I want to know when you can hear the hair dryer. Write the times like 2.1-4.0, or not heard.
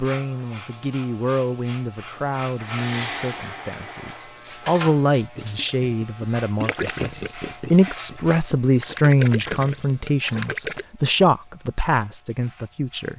2.5-4.3.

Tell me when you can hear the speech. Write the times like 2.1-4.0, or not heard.
0.0-13.1.